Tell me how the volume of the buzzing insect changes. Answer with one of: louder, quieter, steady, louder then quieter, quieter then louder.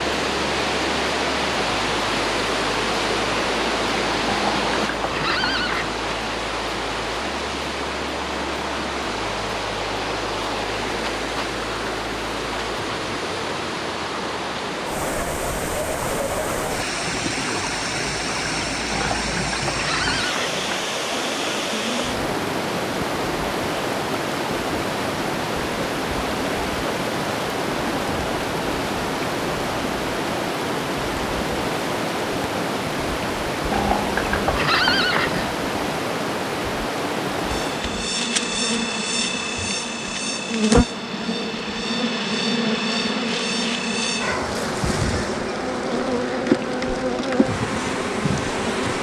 steady.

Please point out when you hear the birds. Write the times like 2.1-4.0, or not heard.
not heard.